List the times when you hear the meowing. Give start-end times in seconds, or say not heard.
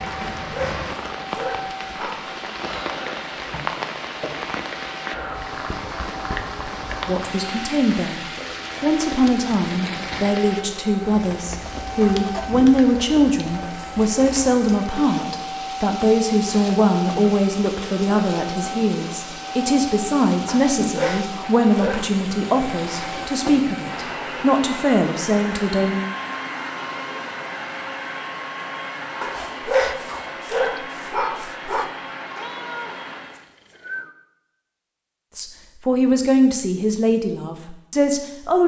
32.4-34.1.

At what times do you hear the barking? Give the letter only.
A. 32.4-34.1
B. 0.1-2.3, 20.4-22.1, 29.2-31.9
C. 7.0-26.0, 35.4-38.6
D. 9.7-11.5
B.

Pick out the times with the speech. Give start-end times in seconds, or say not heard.
7.0-26.0, 35.4-38.6.